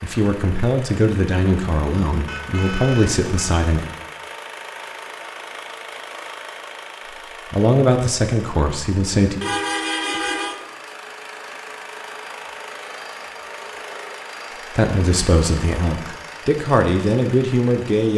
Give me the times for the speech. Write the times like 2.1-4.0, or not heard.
0.0-3.9, 7.5-9.4, 14.8-18.1.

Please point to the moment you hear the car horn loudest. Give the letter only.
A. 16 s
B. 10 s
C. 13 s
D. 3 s
B.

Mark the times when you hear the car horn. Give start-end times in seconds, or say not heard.
2.2-3.6, 9.4-10.7.